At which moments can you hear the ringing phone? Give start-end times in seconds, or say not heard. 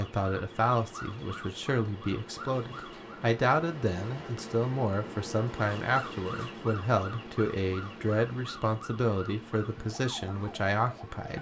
not heard.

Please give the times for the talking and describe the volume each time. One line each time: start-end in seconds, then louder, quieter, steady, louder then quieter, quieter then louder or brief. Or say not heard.
0.0-11.3 steady.